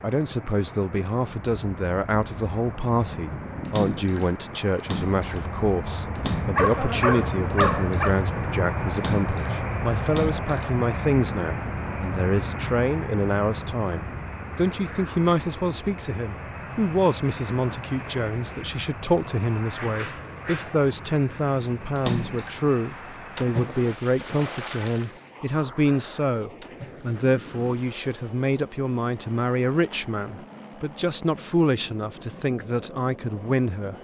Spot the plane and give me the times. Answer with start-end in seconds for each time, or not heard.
0.0-33.9.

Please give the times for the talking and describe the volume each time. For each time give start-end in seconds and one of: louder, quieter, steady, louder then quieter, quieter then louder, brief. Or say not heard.
0.0-33.9 steady.